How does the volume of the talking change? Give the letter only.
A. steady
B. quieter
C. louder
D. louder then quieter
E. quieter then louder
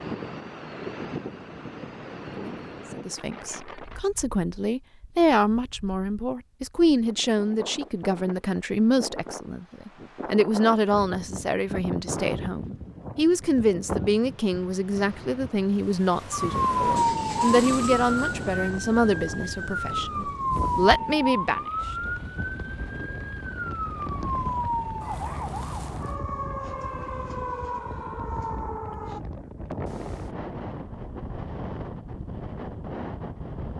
A.